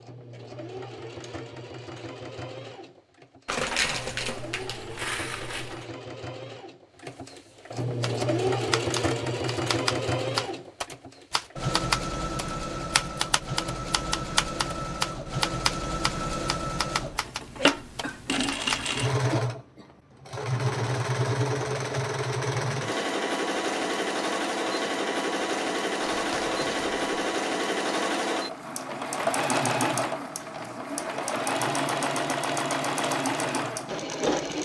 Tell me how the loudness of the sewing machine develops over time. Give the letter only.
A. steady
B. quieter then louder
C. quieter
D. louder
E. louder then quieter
D.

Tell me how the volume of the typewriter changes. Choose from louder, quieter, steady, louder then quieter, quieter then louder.
steady.